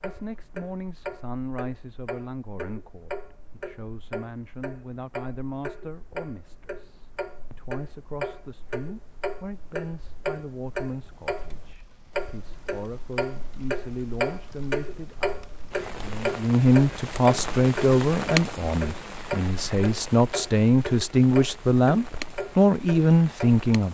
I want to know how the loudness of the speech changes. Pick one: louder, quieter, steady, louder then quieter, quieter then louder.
louder.